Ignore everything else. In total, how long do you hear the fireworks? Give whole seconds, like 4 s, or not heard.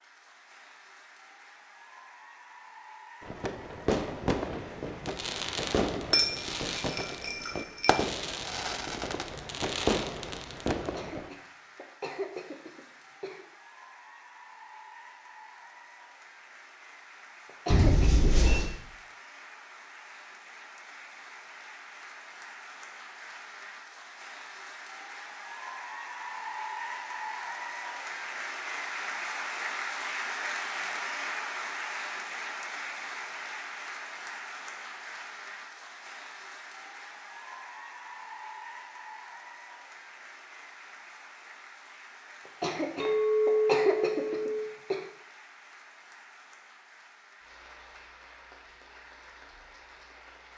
8 s.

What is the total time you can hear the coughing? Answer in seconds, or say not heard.
6 s.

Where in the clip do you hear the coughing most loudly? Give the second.
44 s.